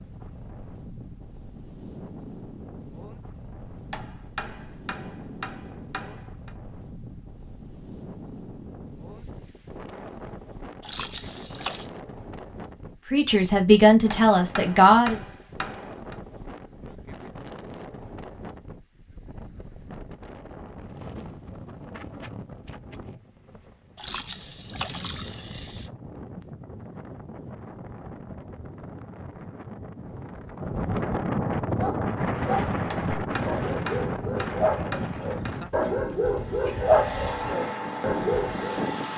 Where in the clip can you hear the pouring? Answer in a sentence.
The pouring can be heard from 10.8 to 11.9 s and from 23.9 to 25.9 s.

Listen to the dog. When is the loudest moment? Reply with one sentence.
The volume of the dog peaks at 37 seconds.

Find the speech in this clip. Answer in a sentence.
The speech can be heard from 13.1 to 15.2 s.